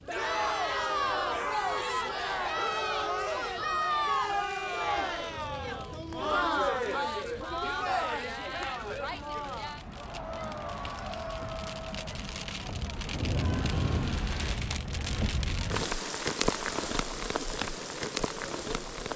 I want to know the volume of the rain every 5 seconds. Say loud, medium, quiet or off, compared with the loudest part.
quiet, quiet, loud, loud.